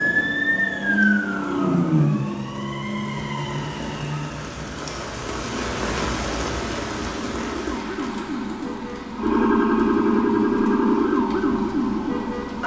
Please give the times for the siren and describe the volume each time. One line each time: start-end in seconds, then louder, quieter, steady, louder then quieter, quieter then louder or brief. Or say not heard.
0.0-12.6 quieter then louder.